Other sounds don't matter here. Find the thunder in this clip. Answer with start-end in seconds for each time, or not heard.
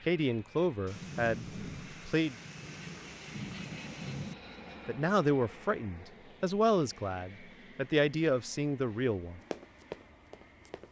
0.8-4.3.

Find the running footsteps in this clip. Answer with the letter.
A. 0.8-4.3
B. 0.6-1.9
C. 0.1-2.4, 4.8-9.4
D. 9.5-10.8
D.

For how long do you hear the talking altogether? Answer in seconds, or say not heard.
7 s.